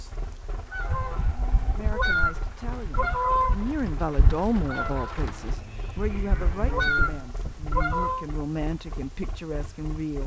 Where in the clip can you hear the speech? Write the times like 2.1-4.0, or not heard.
1.8-10.2.